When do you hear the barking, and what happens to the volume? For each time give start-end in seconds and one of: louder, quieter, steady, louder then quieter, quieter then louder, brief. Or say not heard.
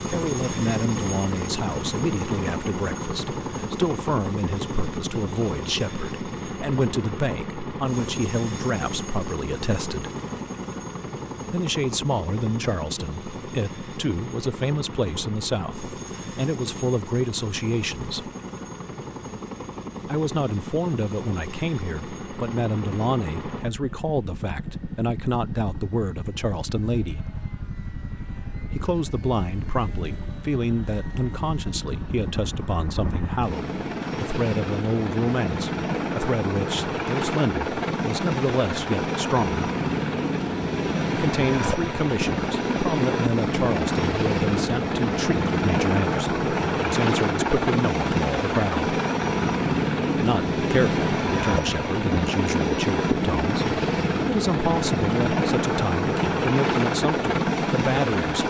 not heard.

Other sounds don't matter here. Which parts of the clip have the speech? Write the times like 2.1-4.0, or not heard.
0.1-10.1, 11.5-18.3, 20.1-27.2, 28.6-39.6, 41.1-48.9, 50.1-58.4.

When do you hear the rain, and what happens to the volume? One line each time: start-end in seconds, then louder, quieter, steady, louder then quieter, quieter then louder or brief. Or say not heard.
not heard.